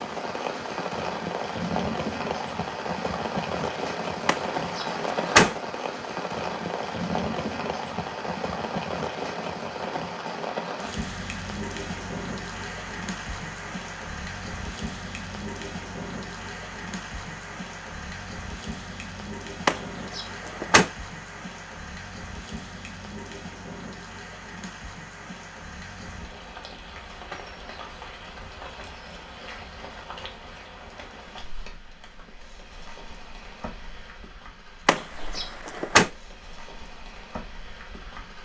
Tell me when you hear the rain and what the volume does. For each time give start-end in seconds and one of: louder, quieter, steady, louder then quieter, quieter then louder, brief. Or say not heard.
0.0-38.4 quieter.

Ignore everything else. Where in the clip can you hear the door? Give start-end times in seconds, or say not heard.
4.2-5.5, 19.6-20.9, 34.9-36.1.